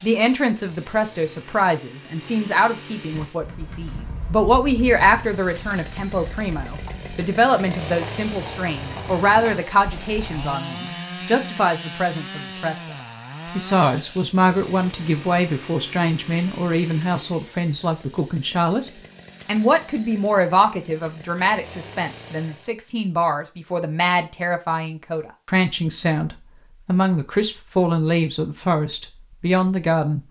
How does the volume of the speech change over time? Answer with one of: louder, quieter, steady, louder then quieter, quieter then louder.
steady.